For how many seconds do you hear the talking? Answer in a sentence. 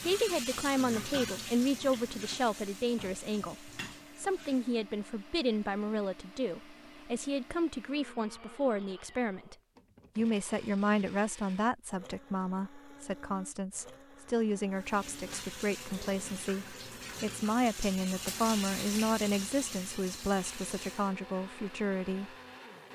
You can hear the talking for 22 seconds altogether.